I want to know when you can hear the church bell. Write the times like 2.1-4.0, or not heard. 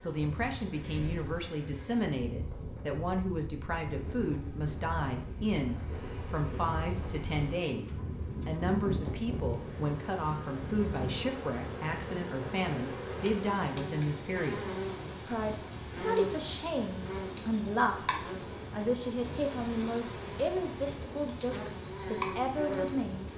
not heard.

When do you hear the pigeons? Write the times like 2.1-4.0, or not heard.
not heard.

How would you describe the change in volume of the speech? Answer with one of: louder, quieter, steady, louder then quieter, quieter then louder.
steady.